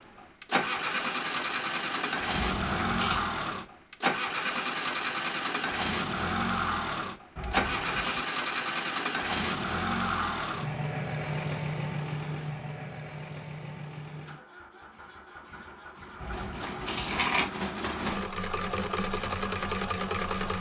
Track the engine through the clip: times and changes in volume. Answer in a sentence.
The engine can be heard from 0.0 to 20.5 s, getting quieter then louder.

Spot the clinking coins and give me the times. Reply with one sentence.
The clinking coins can be heard from 2.3 to 3.2 s, from 7.3 to 8.2 s and from 16.1 to 17.5 s.